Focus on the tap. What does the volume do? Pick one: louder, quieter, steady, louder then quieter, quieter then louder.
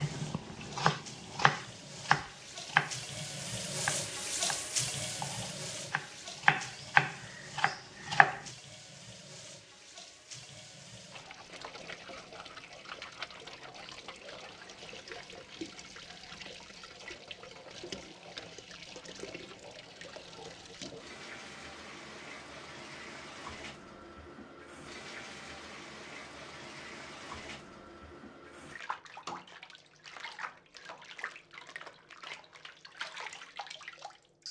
quieter.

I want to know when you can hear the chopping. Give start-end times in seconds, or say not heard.
0.0-8.4.